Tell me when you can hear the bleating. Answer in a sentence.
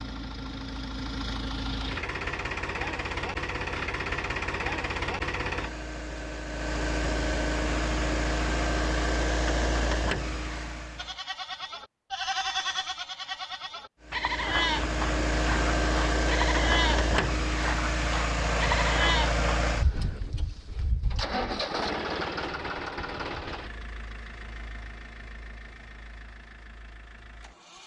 You can hear the bleating from 10.9 to 19.4 s.